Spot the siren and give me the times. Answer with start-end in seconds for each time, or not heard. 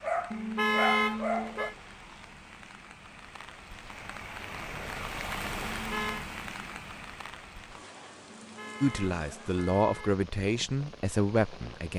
not heard.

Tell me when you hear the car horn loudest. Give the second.
1 s.